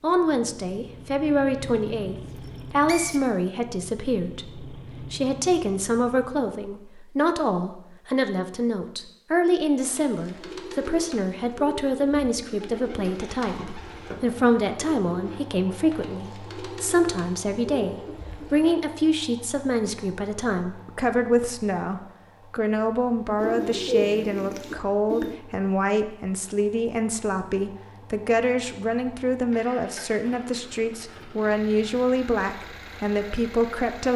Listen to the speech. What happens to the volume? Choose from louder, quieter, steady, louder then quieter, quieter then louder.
steady.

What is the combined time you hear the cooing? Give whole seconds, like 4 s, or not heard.
11 s.